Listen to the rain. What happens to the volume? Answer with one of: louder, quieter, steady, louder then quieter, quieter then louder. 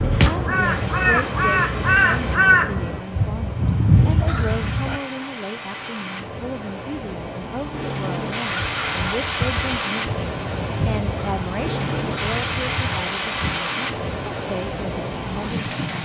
louder.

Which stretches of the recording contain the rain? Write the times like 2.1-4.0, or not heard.
0.0-15.9.